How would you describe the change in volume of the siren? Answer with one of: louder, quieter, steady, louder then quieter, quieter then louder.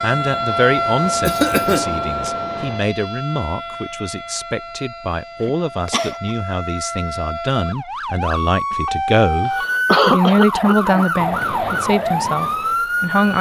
quieter then louder.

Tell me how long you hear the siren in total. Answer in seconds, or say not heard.
13 s.